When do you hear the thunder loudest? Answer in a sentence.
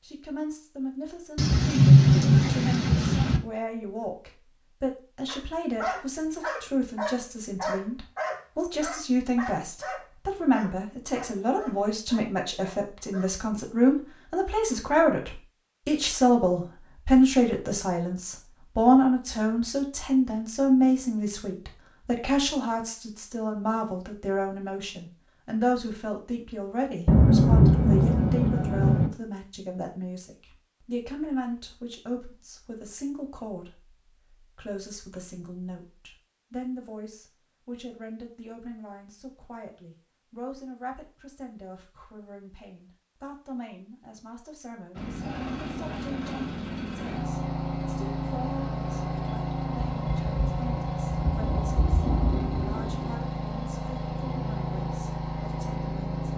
The loudest moment of the thunder is at 2 seconds.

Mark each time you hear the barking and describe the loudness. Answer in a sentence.
The barking can be heard from 5.2 to 13.3 s, getting quieter.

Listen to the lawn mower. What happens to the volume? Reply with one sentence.
The loudness of the lawn mower stays about the same.